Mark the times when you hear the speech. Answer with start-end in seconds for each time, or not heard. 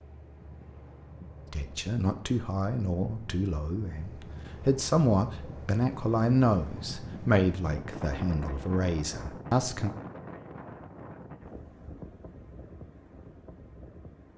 1.5-9.9.